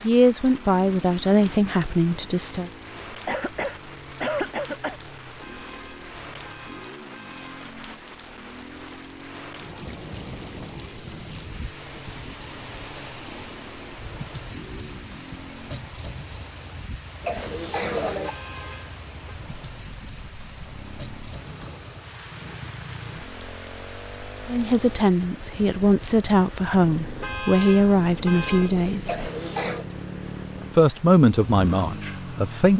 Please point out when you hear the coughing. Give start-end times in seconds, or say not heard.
3.2-5.0, 17.2-18.4, 29.1-29.9.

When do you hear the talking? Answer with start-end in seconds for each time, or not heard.
0.0-2.7, 24.4-29.3, 30.8-32.7.